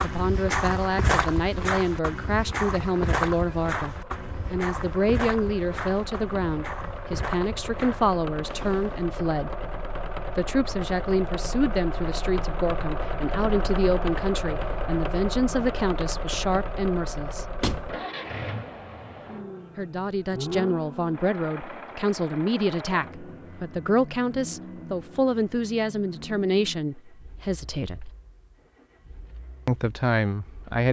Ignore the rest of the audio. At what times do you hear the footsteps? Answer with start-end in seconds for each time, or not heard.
0.0-9.1.